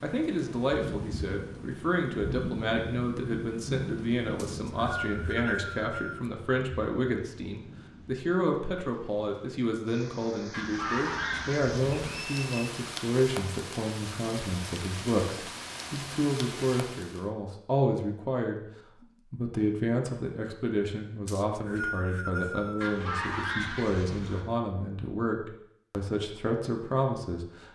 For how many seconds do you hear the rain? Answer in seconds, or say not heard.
17 s.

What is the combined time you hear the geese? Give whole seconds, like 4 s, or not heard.
3 s.